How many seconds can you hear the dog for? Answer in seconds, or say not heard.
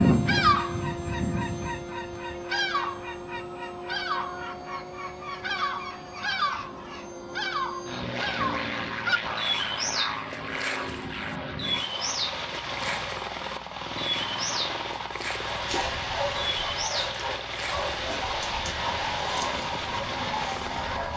6 s.